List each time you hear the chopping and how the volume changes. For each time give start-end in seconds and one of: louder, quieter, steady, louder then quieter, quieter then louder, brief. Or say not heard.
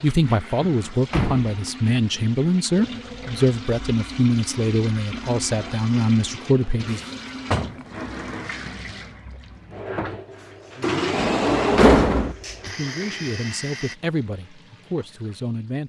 not heard.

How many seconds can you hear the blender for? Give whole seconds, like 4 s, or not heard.
4 s.